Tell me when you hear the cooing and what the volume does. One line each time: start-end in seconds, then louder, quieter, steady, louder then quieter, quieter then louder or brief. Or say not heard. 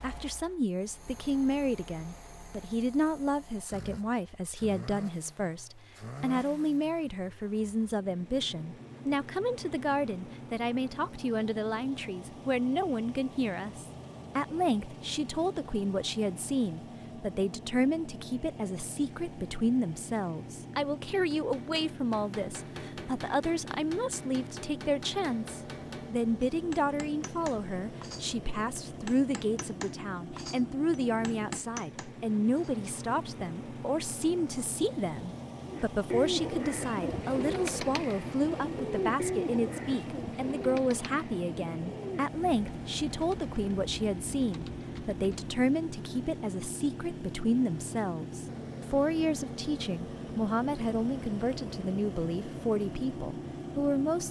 35.6-45.5 quieter.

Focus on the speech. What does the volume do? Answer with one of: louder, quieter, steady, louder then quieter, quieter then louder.
steady.